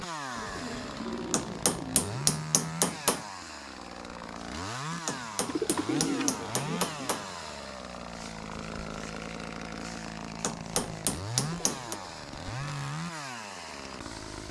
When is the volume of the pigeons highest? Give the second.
6 s.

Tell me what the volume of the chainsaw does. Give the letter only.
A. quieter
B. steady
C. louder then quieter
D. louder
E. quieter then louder
B.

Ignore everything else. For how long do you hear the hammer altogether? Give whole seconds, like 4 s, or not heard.
6 s.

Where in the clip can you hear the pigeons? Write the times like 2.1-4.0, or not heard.
0.3-2.3, 5.5-7.2, 11.4-12.8.